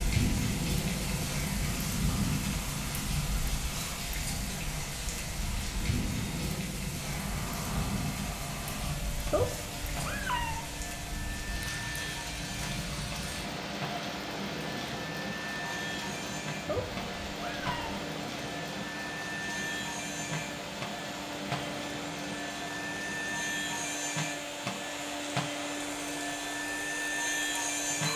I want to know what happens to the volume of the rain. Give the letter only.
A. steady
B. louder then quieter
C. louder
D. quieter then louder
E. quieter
E.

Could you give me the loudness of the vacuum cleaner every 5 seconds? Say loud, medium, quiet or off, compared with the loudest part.
quiet, medium, medium, medium, loud, loud.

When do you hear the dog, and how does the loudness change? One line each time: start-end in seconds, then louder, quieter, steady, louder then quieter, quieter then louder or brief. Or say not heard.
not heard.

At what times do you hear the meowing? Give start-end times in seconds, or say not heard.
9.3-10.7, 16.6-17.9.